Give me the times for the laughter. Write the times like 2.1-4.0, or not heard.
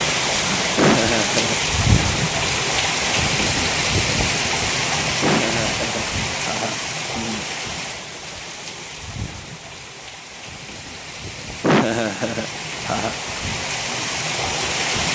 0.8-1.6, 5.2-7.5, 11.6-13.2.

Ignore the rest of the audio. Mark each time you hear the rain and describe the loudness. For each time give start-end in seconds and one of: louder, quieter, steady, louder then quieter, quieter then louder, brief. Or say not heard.
0.0-15.0 quieter then louder.